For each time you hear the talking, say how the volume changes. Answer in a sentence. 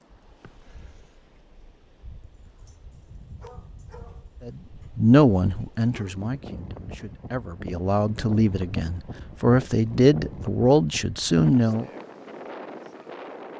You can hear the talking from 4.5 to 11.9 s, getting quieter then louder.